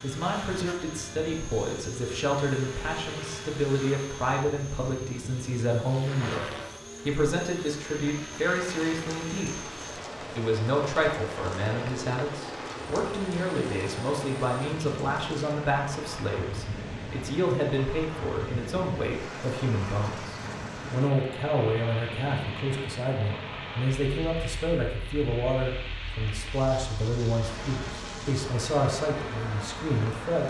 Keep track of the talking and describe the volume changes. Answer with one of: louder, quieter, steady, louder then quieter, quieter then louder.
steady.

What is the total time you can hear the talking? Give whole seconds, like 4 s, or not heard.
30 s.